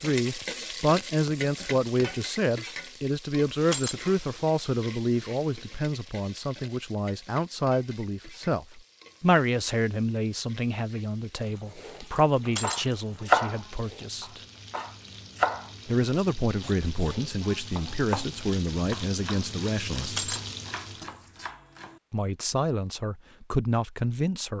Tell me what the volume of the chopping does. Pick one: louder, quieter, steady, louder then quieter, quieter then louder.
quieter.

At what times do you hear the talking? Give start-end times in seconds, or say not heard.
0.0-14.4, 15.8-20.2, 22.1-24.5.